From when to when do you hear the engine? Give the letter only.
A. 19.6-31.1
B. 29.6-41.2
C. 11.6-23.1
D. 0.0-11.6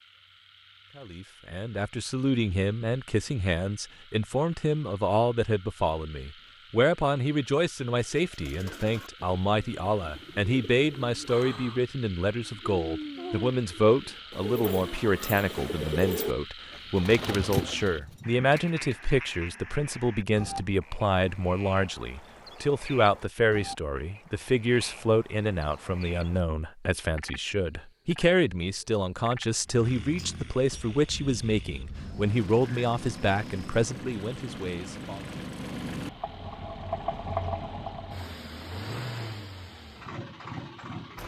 B.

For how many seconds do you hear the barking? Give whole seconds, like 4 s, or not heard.
not heard.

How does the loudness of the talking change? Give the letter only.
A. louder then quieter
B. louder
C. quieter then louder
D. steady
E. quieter
D.